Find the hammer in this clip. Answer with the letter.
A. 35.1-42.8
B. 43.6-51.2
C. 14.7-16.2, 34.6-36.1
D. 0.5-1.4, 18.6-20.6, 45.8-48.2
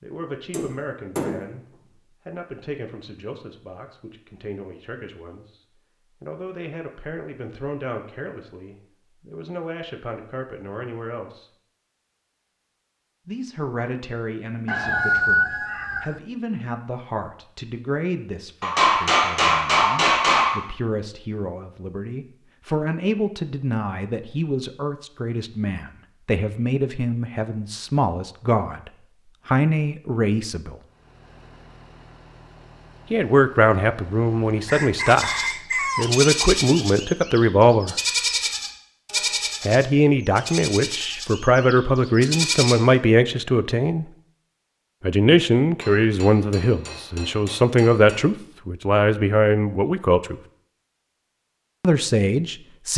D.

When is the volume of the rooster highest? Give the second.
15 s.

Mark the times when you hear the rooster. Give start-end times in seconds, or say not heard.
14.7-16.2, 34.6-36.1.